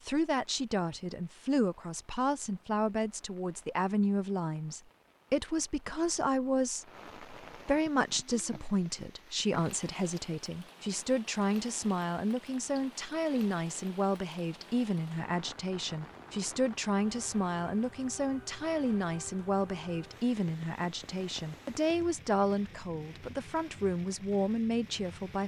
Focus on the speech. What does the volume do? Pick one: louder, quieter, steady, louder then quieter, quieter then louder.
steady.